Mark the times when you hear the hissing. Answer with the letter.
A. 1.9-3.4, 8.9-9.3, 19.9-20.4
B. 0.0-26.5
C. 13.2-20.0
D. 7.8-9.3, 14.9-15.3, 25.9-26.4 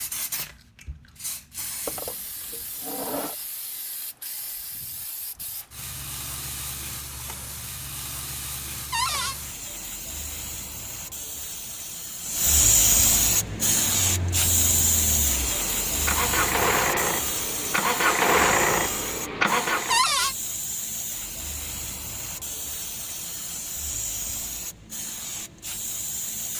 B.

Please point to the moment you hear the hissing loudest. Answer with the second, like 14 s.
13 s.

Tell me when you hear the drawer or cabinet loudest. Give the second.
20 s.